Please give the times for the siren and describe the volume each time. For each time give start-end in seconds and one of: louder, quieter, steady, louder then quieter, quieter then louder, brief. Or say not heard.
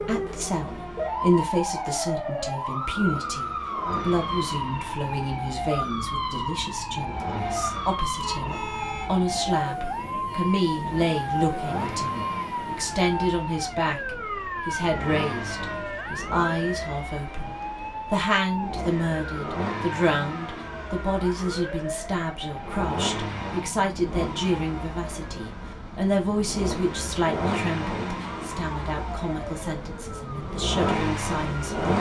0.0-31.9 quieter.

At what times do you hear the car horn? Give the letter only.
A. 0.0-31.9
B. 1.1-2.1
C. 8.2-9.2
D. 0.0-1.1
C.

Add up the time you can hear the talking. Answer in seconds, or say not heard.
32 s.